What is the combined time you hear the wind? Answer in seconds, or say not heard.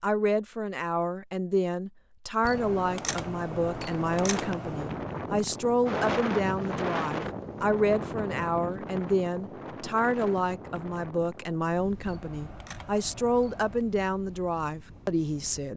13 s.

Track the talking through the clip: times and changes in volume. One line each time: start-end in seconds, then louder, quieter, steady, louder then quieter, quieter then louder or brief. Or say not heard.
0.0-15.7 steady.